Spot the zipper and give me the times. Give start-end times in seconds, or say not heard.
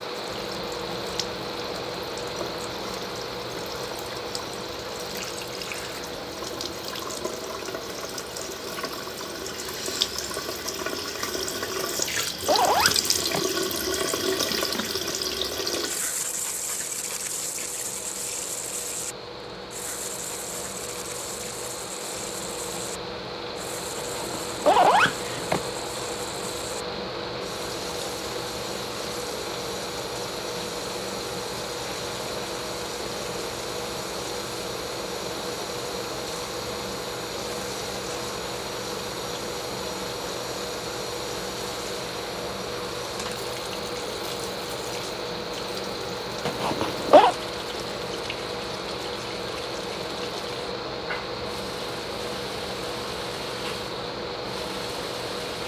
11.8-13.4, 23.9-25.6, 46.5-47.4.